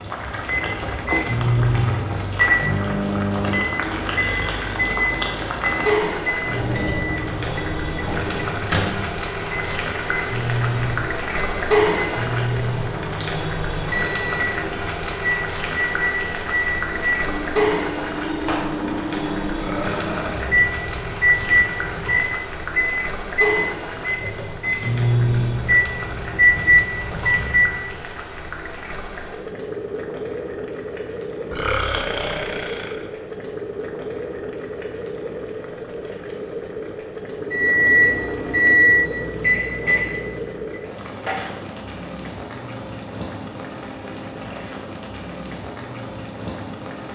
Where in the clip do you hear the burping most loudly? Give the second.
32 s.